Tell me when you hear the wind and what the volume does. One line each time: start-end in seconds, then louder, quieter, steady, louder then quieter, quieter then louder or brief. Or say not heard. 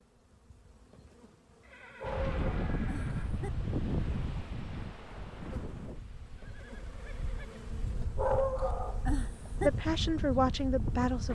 2.0-11.3 quieter then louder.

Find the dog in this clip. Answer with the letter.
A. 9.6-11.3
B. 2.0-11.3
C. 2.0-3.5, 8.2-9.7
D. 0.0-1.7
C.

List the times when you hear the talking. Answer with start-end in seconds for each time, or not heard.
9.6-11.3.